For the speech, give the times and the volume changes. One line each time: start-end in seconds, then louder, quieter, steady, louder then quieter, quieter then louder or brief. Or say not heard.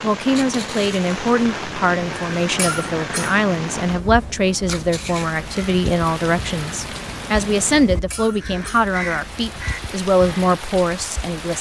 0.0-11.5 steady.